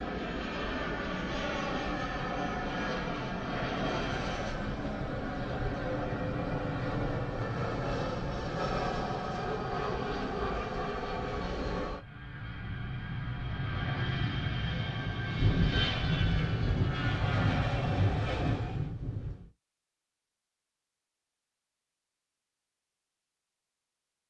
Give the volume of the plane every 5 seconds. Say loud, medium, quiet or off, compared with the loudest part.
loud, loud, loud, loud, off.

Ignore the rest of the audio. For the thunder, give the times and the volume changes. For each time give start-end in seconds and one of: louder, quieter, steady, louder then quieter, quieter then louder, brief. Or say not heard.
15.3-19.5 steady.